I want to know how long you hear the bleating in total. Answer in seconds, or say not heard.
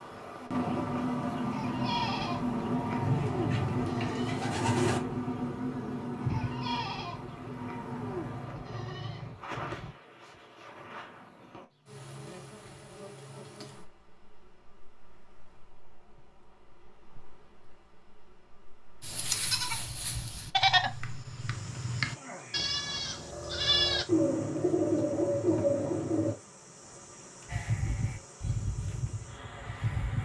17 s.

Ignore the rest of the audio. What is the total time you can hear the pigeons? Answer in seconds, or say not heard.
4 s.